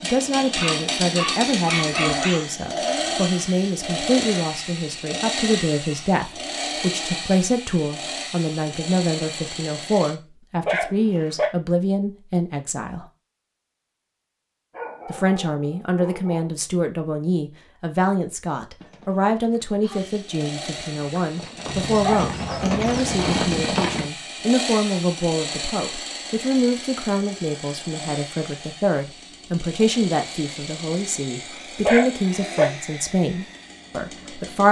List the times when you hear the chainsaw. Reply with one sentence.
You can hear the chainsaw from 0.0 to 10.2 s and from 19.9 to 34.6 s.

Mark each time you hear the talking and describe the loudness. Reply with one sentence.
You can hear the talking from 0.0 to 13.1 s, at a steady volume; and from 15.1 to 34.6 s, at a steady volume.